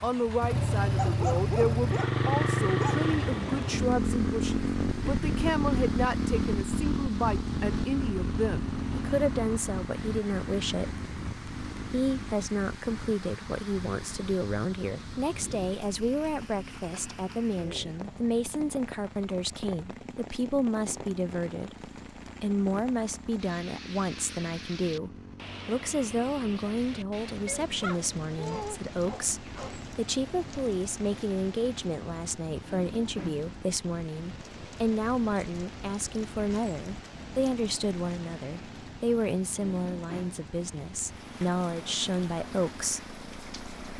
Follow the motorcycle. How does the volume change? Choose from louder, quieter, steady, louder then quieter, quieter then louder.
quieter.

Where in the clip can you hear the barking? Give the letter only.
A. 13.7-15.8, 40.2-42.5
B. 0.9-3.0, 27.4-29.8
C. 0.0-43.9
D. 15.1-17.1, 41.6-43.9
B.